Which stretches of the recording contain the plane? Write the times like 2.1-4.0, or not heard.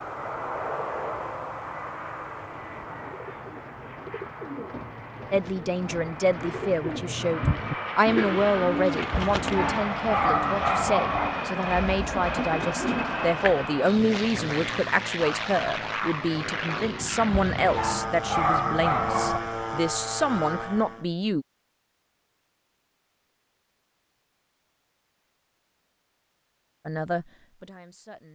0.0-21.1.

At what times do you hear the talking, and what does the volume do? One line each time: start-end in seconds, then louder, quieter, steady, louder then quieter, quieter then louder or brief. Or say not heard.
5.3-21.4 steady
26.9-28.3 brief.